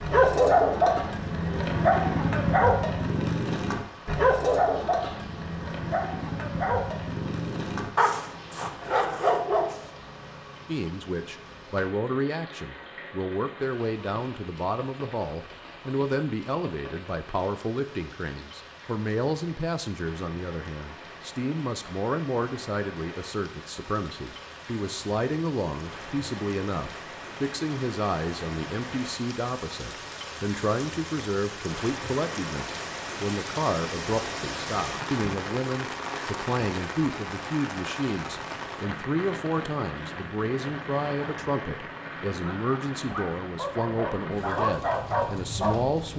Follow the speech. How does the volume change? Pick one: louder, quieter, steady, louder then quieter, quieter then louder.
steady.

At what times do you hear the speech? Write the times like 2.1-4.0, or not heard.
10.7-46.1.